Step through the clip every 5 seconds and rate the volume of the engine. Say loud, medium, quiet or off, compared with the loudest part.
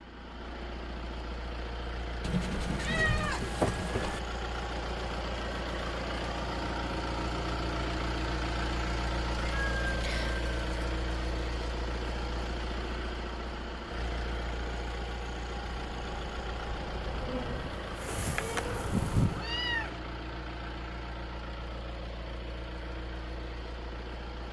medium, loud, loud, medium, medium.